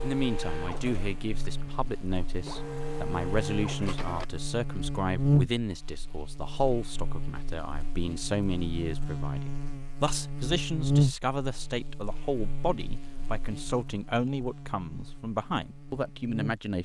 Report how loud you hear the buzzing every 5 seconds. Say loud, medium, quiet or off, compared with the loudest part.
medium, loud, loud, medium.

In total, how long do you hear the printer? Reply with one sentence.
You can hear the printer for 4 seconds altogether.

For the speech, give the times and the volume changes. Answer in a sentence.
The speech can be heard from 0.0 to 16.7 s, at a steady volume.